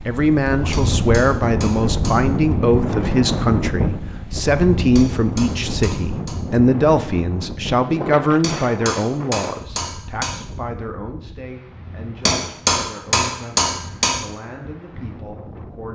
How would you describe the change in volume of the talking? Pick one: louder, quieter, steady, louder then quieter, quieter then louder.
quieter.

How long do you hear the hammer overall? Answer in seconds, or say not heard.
7 s.